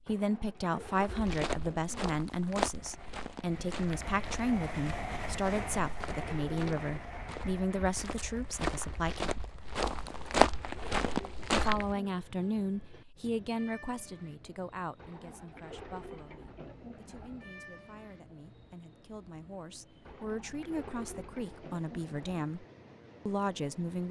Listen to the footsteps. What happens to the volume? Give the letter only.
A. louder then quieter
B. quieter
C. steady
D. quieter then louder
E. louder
D.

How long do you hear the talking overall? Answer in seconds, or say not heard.
21 s.